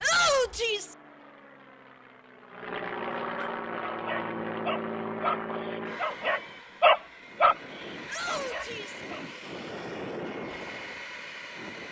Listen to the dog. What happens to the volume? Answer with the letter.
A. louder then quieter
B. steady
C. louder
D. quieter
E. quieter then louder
A.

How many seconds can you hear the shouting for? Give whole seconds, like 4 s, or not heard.
2 s.